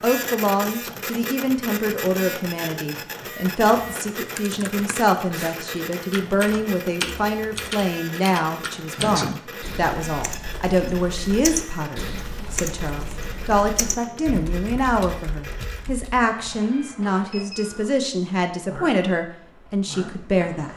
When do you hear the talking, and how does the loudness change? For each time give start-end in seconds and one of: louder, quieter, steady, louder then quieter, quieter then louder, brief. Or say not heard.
0.0-20.7 steady.